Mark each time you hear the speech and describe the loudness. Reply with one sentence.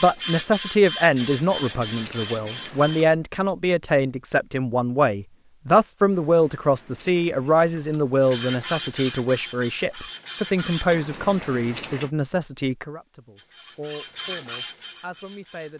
You can hear the speech from 0.0 to 15.7 s, getting quieter.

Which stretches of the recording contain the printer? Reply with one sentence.
The printer can be heard from 0.0 to 3.1 s, from 8.2 to 11.0 s and from 13.3 to 15.7 s.